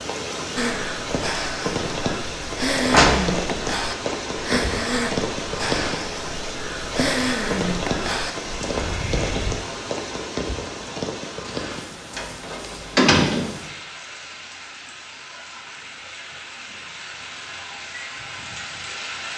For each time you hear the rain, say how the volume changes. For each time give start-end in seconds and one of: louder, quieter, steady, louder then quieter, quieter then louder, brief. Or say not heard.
0.0-19.3 quieter.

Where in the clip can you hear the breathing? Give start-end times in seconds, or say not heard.
0.6-9.6.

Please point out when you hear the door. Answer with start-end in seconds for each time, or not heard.
2.9-4.2, 12.2-13.6.